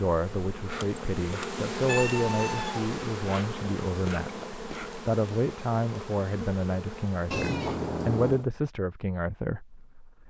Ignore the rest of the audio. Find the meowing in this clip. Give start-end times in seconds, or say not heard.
1.9-2.9, 7.3-8.4.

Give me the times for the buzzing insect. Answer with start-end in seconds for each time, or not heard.
0.0-8.5.